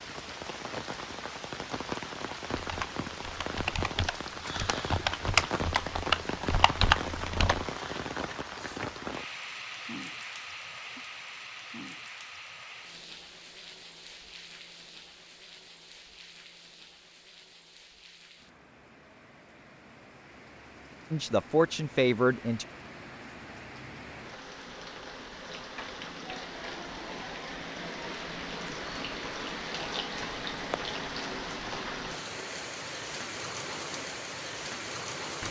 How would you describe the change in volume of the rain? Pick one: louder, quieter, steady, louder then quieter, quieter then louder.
quieter then louder.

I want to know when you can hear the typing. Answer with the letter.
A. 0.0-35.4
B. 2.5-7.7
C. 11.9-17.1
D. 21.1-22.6
B.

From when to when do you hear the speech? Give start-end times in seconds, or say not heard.
21.1-22.6.